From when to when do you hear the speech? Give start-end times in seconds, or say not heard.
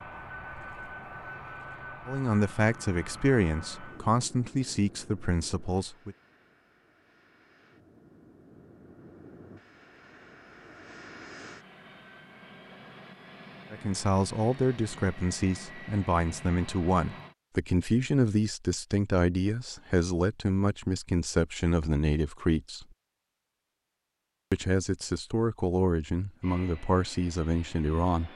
2.0-6.2, 13.7-22.9, 24.5-28.3.